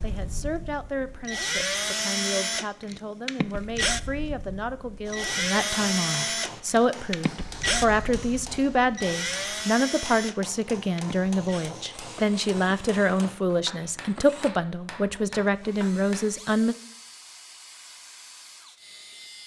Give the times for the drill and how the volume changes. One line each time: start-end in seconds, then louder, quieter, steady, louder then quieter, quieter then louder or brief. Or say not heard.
0.0-19.4 quieter.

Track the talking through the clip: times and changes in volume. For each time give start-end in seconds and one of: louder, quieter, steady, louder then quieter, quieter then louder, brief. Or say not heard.
0.0-16.8 louder.